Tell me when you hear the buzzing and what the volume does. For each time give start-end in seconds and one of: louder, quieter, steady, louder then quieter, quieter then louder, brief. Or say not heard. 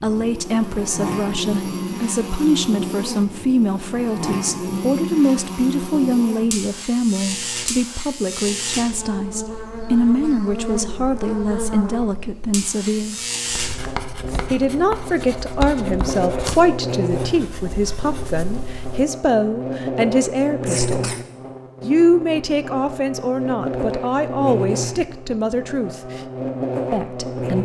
0.0-27.6 steady.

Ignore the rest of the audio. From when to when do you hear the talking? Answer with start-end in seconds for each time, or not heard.
0.0-13.2, 14.5-21.1, 21.8-26.2, 26.9-27.6.